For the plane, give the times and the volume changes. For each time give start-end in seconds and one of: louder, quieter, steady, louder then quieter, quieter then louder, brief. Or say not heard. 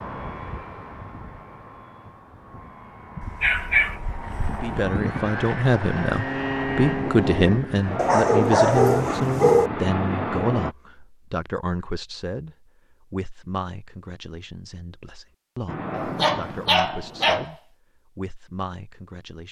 0.0-10.8 louder
15.7-17.4 brief.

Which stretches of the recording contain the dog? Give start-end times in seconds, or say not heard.
3.2-4.8, 8.0-9.7, 15.9-17.5.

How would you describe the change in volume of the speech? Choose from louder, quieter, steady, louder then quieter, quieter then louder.
quieter.